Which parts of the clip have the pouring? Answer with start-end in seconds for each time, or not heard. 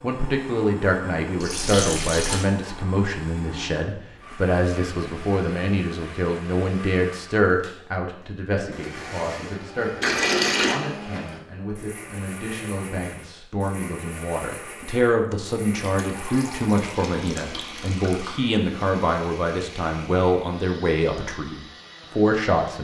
1.4-2.5, 10.0-10.8, 15.8-18.4.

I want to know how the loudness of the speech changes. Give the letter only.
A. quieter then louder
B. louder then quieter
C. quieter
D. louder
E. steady
A.